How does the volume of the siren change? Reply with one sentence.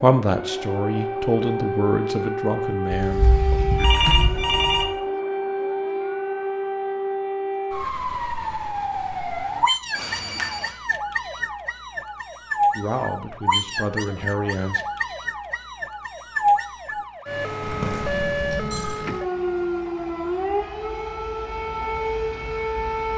The volume of the siren stays about the same.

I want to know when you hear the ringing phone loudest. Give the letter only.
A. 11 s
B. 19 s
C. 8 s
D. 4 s
D.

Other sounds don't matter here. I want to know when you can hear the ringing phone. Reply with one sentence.
The ringing phone can be heard from 2.9 to 4.8 s, from 9.9 to 10.7 s and from 17.6 to 19.0 s.